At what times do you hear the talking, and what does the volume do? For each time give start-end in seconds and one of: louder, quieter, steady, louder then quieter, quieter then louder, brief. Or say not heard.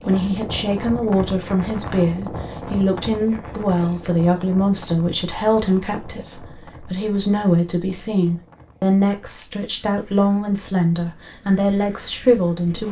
0.1-12.8 steady.